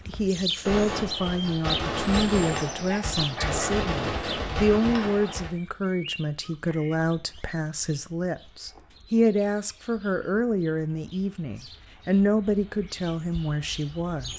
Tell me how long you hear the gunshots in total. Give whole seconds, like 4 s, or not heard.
5 s.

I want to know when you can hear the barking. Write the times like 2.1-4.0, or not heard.
2.8-3.8.